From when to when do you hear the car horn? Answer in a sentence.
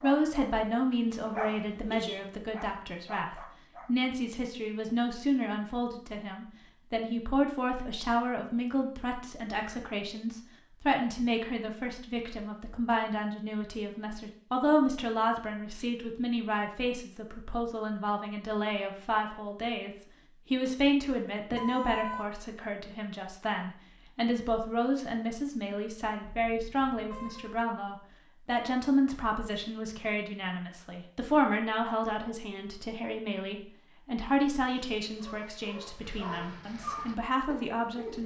The car horn can be heard from 1.6 to 2.4 s, from 21.5 to 22.4 s and from 26.2 to 27.6 s.